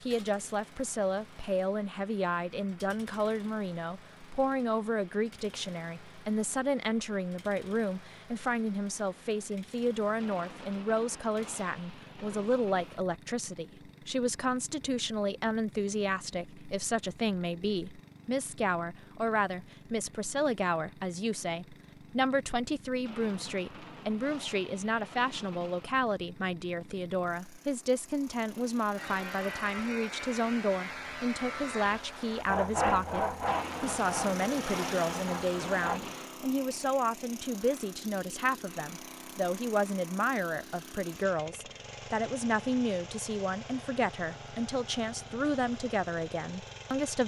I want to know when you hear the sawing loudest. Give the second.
33 s.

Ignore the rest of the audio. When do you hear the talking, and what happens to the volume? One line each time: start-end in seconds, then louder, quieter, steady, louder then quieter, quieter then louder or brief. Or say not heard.
0.0-47.2 steady.